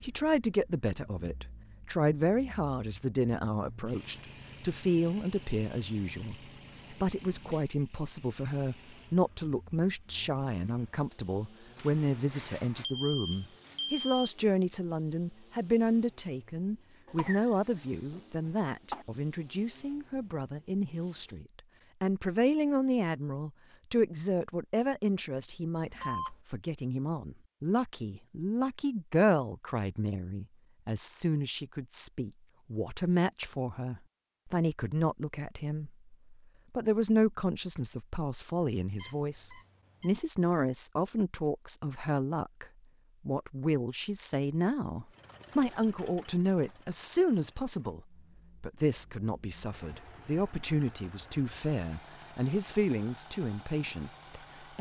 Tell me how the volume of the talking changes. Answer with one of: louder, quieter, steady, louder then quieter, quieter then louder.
steady.